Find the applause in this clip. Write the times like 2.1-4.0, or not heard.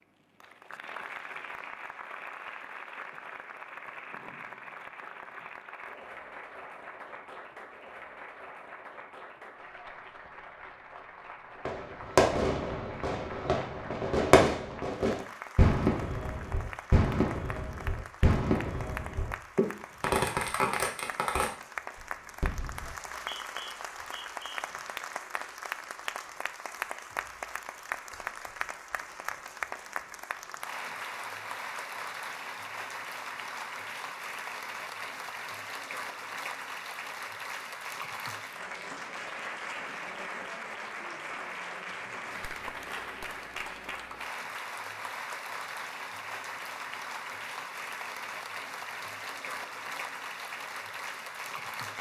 0.4-51.9.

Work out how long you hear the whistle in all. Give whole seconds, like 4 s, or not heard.
2 s.